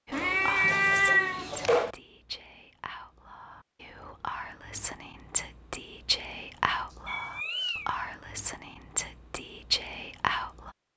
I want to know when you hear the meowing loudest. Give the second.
1 s.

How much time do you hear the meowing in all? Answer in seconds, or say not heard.
3 s.